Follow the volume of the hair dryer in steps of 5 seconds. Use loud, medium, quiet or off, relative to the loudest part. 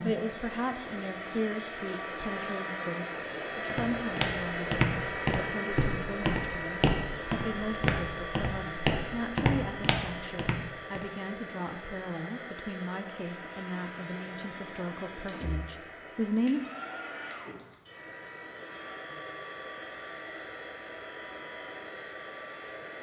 loud, loud, medium, medium, medium.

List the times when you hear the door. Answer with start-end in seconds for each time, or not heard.
14.9-15.7.